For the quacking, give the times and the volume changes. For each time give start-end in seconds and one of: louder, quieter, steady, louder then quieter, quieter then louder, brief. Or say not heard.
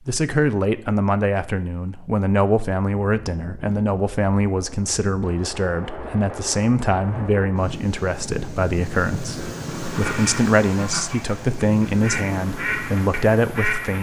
9.9-13.9 louder then quieter.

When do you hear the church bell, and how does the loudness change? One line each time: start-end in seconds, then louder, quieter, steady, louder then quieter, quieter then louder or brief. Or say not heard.
not heard.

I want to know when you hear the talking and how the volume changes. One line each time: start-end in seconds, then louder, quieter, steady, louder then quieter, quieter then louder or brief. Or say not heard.
0.1-13.9 steady.